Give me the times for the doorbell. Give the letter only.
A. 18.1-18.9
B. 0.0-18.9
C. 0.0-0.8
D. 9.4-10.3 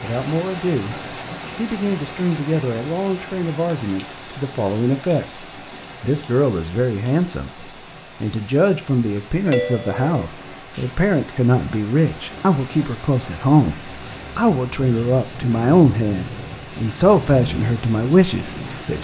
D.